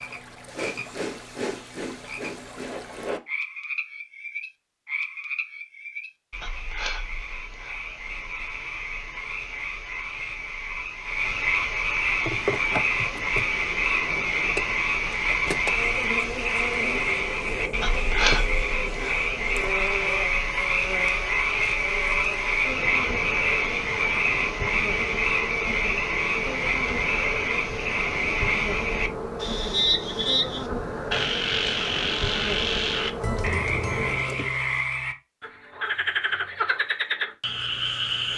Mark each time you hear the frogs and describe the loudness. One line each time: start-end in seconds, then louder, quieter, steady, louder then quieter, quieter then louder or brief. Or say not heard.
0.0-38.3 louder.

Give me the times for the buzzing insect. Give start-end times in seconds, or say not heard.
12.0-34.8.